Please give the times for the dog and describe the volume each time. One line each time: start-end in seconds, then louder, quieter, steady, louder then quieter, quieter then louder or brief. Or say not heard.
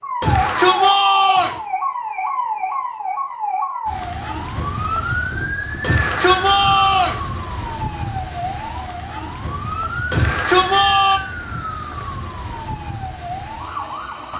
not heard.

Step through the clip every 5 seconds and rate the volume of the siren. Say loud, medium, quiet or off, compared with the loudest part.
loud, loud, medium.